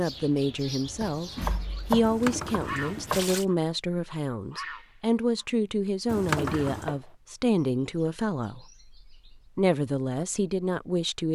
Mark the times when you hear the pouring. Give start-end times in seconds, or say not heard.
2.0-3.5, 6.0-7.0.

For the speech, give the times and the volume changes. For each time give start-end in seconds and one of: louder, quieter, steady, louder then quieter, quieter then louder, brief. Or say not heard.
0.0-11.3 steady.